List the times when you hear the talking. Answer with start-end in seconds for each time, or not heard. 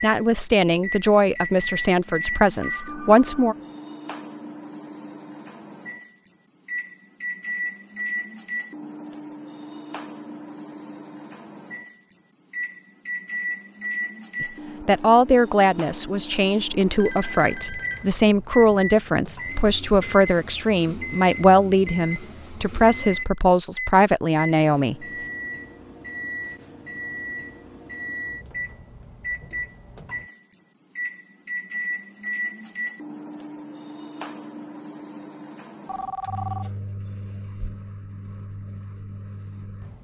0.0-3.5, 14.4-24.9.